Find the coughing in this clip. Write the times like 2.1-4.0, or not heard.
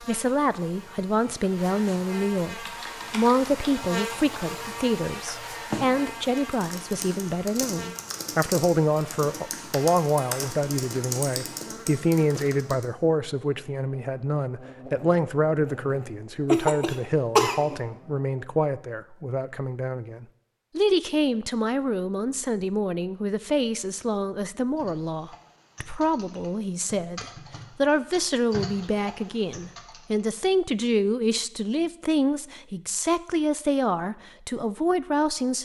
16.5-17.8.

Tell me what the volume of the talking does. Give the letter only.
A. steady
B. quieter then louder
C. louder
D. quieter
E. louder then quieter
A.